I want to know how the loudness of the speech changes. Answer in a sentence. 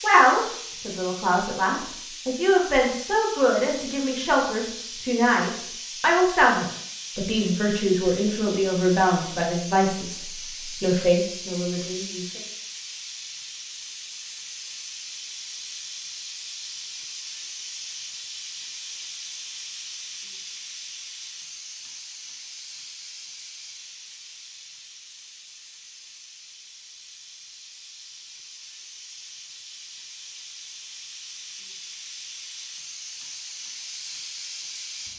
The volume of the speech stays about the same.